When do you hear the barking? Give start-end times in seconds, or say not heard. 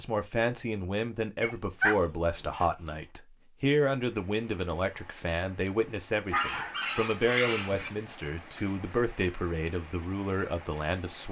1.4-1.9, 2.5-3.0, 6.3-7.9.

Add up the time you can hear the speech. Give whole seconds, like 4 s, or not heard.
11 s.